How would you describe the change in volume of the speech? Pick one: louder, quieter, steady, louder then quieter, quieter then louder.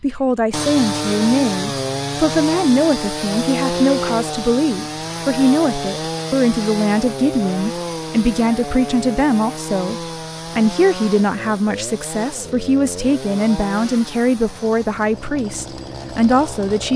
steady.